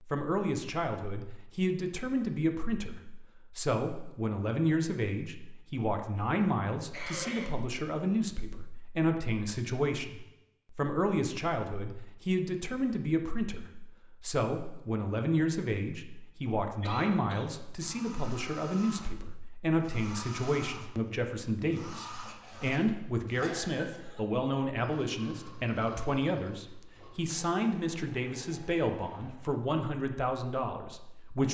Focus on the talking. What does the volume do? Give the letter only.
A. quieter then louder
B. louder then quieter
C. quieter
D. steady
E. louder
D.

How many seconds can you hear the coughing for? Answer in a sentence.
The coughing can be heard for 3 seconds in total.